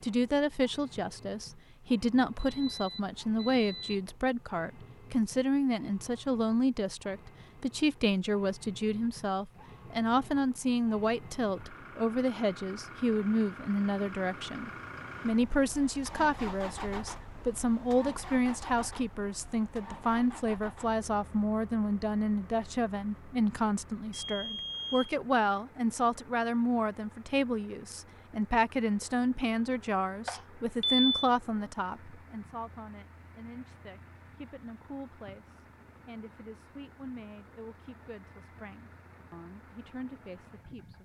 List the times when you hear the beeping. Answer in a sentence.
You can hear the beeping from 2.5 to 4.0 s, from 24.1 to 25.1 s and from 30.2 to 31.1 s.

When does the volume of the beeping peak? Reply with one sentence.
The loudest moment of the beeping is at 31 seconds.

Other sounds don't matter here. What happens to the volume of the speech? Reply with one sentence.
The loudness of the speech goes down.